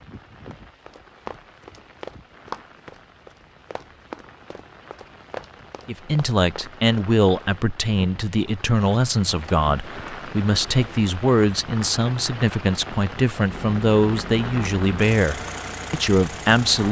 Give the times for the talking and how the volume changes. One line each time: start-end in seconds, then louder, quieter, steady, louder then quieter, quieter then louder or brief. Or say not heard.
5.8-16.8 steady.